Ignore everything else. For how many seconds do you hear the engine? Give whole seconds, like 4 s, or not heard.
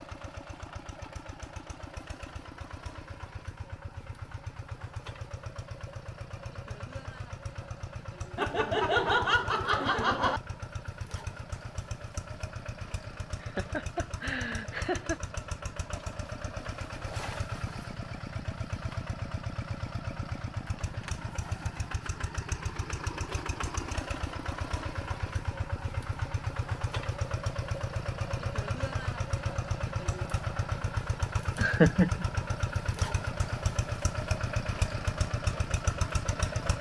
37 s.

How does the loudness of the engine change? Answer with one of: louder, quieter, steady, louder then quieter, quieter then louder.
louder.